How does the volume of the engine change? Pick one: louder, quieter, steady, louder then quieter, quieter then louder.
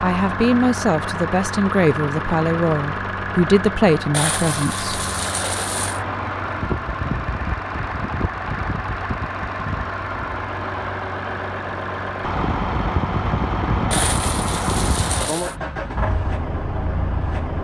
steady.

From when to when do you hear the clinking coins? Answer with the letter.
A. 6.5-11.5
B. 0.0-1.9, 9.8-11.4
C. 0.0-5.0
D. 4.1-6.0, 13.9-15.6
D.